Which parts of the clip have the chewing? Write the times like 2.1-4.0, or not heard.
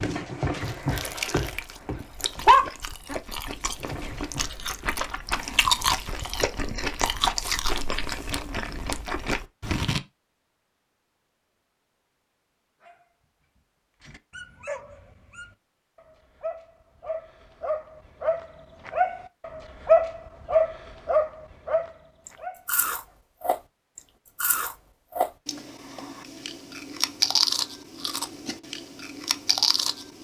0.6-10.0, 22.2-30.1.